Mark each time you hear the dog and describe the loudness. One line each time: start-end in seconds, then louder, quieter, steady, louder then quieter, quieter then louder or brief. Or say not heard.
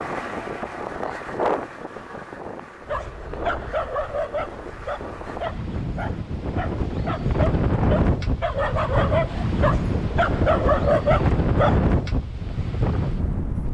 2.9-11.9 quieter then louder.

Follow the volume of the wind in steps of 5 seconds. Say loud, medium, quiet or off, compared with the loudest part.
medium, loud, loud.